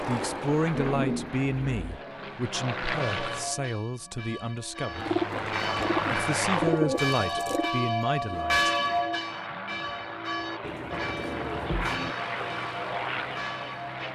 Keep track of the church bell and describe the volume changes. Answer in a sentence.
The volume of the church bell goes up, then down.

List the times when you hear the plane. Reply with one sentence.
The plane can be heard from 0.0 to 3.5 s, from 4.8 to 6.8 s and from 8.5 to 14.1 s.